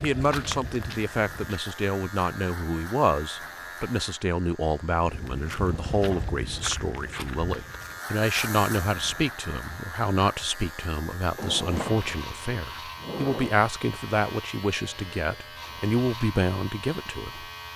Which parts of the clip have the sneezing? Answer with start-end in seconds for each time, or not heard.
not heard.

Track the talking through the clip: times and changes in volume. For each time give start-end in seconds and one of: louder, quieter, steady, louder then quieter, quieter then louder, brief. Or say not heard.
0.0-17.4 steady.